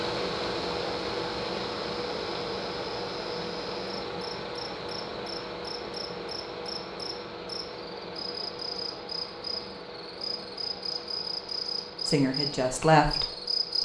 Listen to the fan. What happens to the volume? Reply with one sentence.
The loudness of the fan goes down.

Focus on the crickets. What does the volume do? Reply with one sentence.
The loudness of the crickets goes up.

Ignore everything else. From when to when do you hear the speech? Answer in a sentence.
The speech can be heard from 12.1 to 13.8 s.